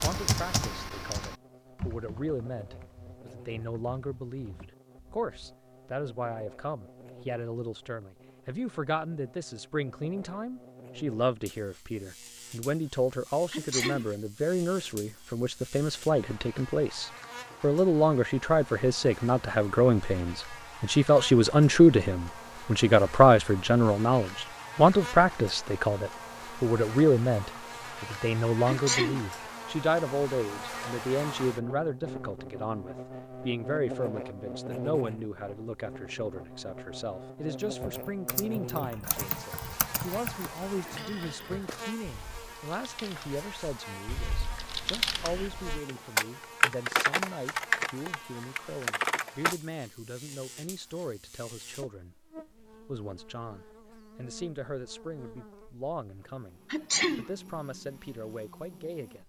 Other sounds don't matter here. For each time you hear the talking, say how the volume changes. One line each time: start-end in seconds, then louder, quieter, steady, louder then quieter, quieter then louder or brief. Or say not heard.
0.0-59.2 louder then quieter.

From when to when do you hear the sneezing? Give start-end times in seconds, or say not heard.
13.5-14.2, 28.6-29.3, 56.7-57.3.